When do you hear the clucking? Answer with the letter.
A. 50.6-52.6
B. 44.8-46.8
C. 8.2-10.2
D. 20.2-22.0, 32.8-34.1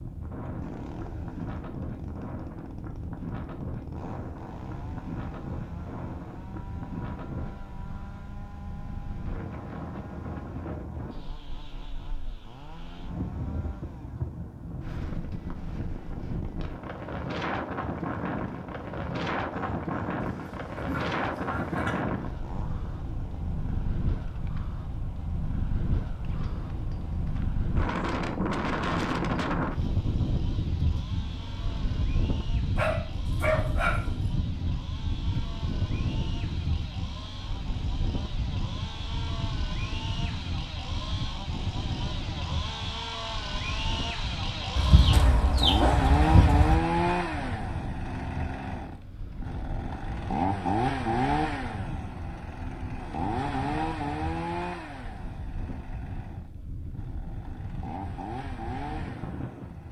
B.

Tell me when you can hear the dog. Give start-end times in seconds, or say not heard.
20.2-22.0, 32.8-34.1.